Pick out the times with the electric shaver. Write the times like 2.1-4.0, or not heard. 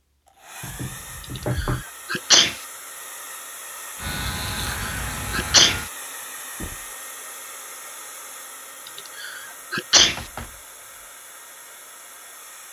4.0-5.9.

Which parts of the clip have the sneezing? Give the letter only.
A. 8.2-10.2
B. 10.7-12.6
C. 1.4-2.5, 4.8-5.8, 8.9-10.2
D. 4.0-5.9
C.